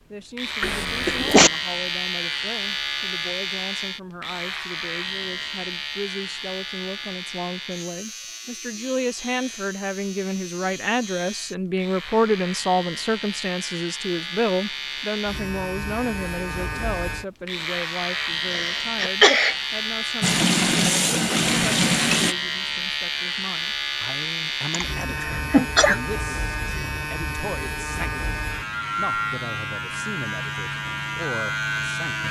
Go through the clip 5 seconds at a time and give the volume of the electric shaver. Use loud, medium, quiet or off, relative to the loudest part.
loud, medium, medium, loud, loud, loud, loud.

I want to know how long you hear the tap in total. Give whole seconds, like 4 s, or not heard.
2 s.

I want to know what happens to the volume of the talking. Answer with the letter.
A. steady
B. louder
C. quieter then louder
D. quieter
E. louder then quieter
E.